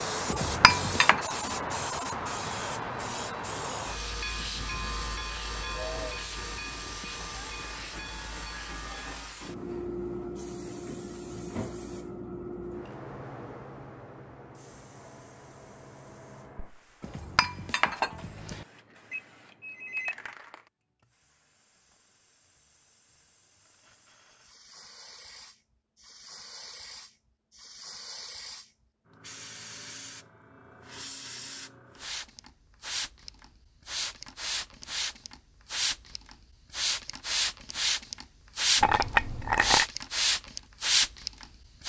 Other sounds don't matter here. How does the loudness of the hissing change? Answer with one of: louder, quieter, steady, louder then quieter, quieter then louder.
quieter then louder.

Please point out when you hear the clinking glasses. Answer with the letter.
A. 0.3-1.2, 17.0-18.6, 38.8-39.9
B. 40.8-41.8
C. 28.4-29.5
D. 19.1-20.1
A.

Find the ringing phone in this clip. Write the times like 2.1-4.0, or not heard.
19.1-20.1.